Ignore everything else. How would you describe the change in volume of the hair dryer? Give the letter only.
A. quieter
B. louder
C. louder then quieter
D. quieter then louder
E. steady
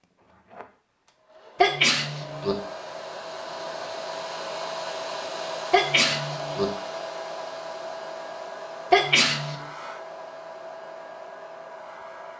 C.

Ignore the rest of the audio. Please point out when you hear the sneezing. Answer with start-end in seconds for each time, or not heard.
1.6-2.5, 5.7-6.7, 8.9-9.7.